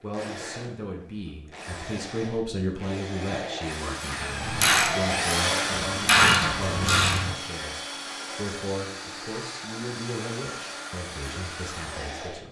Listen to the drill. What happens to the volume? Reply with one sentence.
The volume of the drill goes up, then down.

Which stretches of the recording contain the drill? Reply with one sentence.
The drill can be heard from 0.0 to 12.4 s.